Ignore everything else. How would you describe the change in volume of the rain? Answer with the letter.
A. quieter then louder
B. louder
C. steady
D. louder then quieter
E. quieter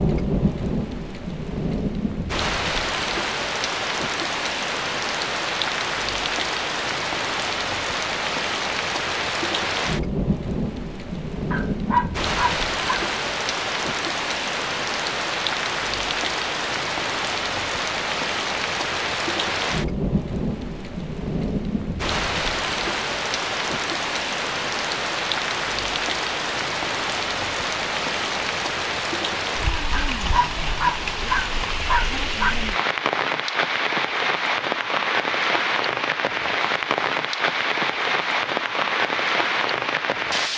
C.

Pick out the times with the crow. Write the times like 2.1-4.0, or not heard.
not heard.